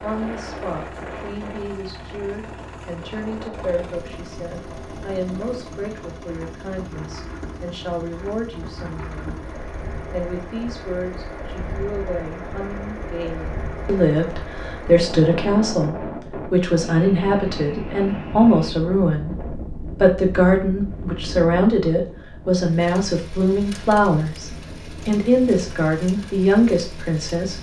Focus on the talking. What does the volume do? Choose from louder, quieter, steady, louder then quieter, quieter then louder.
louder.